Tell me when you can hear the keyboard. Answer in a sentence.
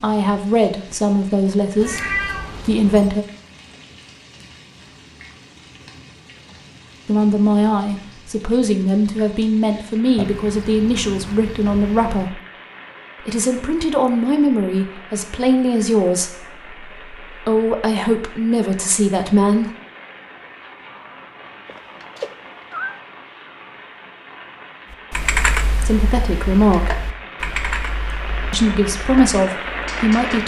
You can hear the keyboard from 24.9 to 30.4 s.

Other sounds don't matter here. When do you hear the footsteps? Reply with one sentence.
The footsteps can't be heard in this clip.